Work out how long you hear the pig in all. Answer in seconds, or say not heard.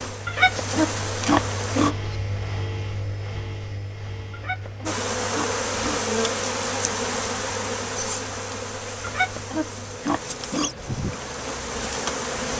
5 s.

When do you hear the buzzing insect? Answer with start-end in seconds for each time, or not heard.
0.0-1.9, 4.8-12.5.